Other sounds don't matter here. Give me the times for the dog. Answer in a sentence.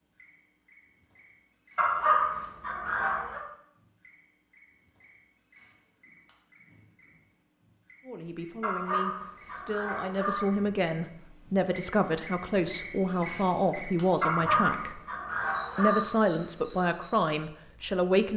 The dog can be heard from 1.8 to 3.5 s, from 8.6 to 10.5 s and from 14.2 to 16.1 s.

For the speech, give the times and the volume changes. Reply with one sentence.
The speech can be heard from 8.1 to 15.0 s, getting louder; and briefly from 15.8 to 18.3 s.